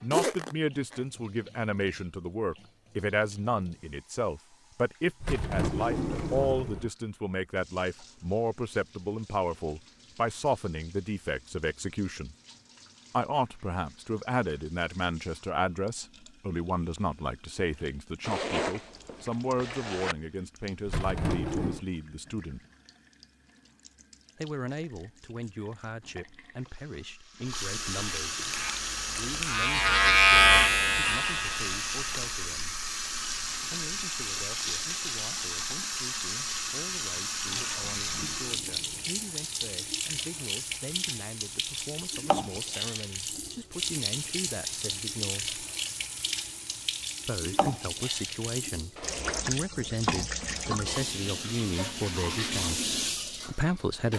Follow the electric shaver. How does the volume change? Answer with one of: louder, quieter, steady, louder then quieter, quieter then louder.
louder then quieter.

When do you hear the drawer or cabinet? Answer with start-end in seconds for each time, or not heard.
5.2-6.9, 20.9-21.9, 37.9-39.2.